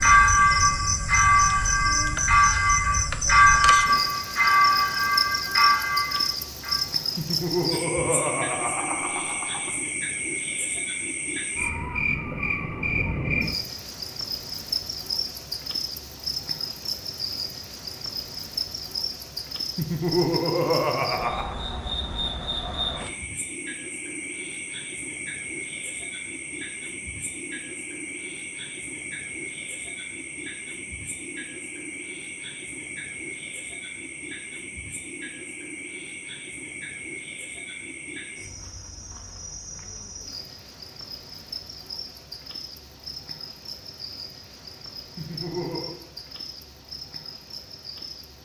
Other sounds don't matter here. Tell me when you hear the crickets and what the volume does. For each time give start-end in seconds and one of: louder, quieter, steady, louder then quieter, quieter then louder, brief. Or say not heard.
0.0-48.4 quieter.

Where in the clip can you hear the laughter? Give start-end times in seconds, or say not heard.
7.2-9.8, 19.8-21.6, 45.1-46.0.